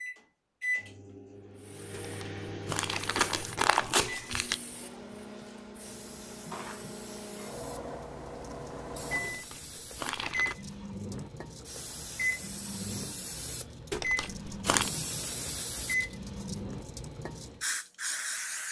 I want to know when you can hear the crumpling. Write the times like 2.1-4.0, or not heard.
1.9-4.6, 9.2-10.6, 13.9-14.9.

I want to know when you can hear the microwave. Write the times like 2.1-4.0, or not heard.
0.0-16.9.